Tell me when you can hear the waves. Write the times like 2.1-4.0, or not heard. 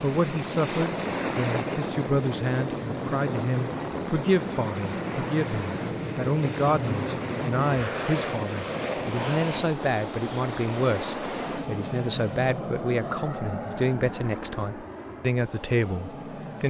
0.0-11.7.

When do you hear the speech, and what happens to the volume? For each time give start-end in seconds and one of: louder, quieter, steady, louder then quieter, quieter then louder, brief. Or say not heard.
0.0-16.6 steady.